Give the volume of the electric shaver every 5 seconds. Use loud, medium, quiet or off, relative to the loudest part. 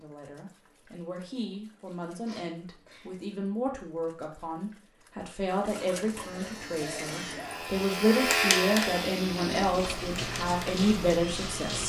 off, loud, medium.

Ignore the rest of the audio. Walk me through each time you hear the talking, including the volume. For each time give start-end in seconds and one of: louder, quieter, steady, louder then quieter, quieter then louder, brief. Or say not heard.
0.0-11.8 louder.